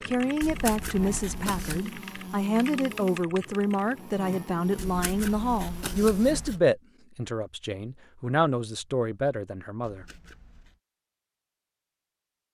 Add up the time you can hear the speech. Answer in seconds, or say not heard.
10 s.